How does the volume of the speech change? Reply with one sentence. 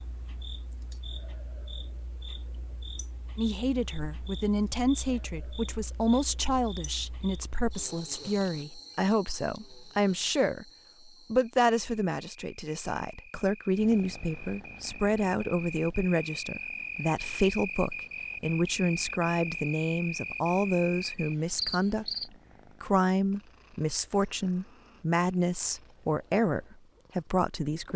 The volume of the speech stays about the same.